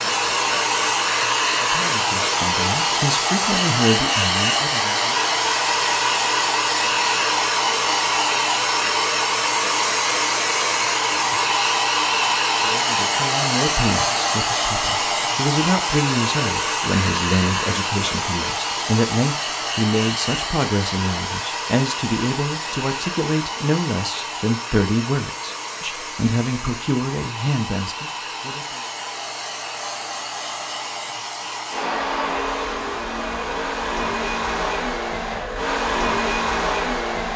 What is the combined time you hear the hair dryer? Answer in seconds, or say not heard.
37 s.